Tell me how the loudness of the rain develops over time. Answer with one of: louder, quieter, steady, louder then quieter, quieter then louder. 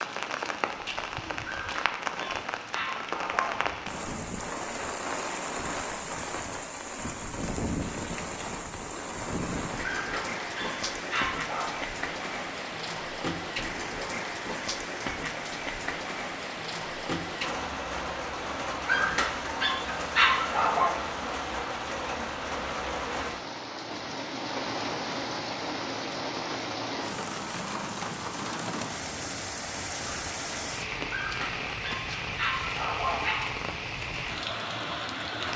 steady.